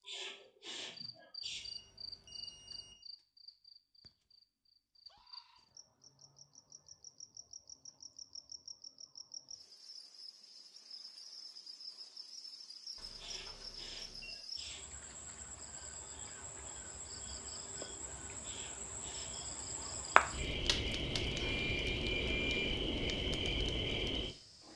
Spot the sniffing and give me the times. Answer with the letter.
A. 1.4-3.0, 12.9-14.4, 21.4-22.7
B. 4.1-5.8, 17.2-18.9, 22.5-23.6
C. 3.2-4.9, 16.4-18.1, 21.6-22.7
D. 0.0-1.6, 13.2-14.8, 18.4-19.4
D.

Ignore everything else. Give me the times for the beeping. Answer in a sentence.
You can hear the beeping from 1.4 to 3.0 s, from 12.9 to 14.4 s and from 21.4 to 22.7 s.